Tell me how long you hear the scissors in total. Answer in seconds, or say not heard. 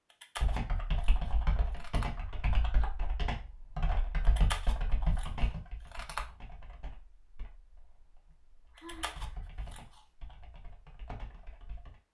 5 s.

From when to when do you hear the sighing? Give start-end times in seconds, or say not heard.
8.3-9.4.